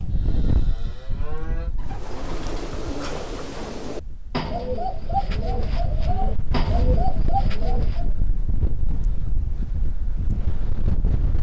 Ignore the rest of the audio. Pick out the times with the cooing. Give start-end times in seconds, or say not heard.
1.8-8.2.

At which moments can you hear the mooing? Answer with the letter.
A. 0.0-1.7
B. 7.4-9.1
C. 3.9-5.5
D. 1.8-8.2
A.